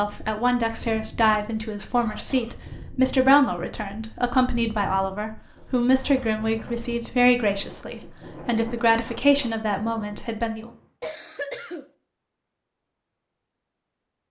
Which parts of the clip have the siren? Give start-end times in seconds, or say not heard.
not heard.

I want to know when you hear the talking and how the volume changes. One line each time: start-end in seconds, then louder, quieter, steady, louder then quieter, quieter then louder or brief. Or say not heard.
0.0-10.7 steady.